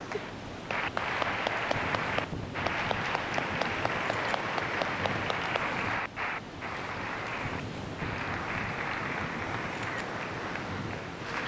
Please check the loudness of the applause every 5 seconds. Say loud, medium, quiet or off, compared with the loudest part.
loud, loud, medium.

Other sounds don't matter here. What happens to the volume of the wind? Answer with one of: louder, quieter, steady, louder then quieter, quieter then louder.
steady.